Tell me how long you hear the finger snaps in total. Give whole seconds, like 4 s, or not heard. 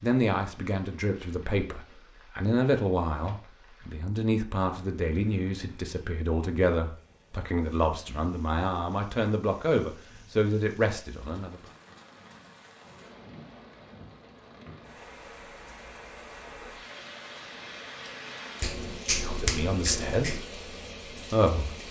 2 s.